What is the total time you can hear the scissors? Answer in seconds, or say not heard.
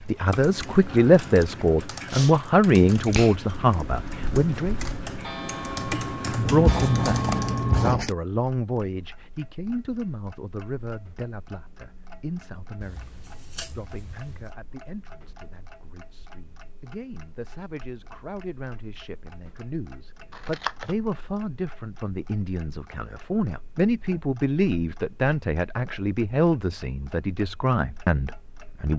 4 s.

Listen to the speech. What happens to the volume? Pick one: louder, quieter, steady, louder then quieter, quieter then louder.
quieter then louder.